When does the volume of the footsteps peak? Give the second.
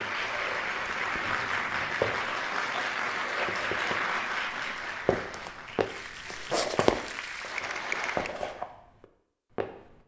7 s.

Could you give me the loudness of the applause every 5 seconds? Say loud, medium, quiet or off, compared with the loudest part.
loud, medium.